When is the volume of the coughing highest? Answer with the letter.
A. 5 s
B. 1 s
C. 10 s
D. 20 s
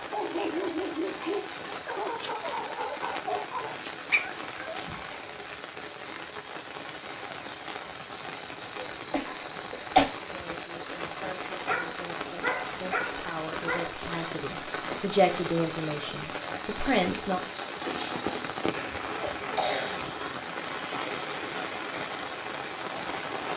C.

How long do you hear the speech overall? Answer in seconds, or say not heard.
7 s.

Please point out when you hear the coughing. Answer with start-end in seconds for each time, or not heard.
0.2-1.9, 8.8-10.1, 17.9-20.2.